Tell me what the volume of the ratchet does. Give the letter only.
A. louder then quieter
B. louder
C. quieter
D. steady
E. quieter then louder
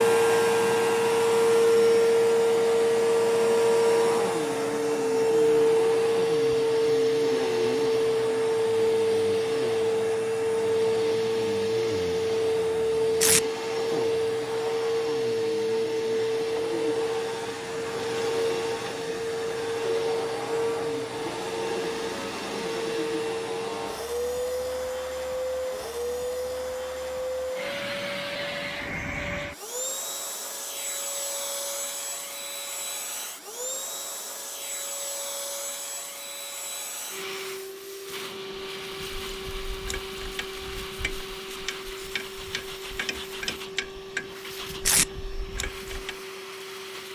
A.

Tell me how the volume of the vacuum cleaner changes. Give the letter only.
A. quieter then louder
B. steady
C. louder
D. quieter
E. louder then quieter
D.